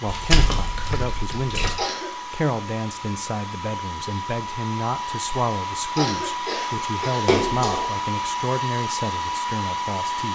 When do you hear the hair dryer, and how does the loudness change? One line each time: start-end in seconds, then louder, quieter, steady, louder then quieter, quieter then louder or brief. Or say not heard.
0.0-10.3 louder.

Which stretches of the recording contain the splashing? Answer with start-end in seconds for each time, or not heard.
0.1-1.8, 7.2-7.9.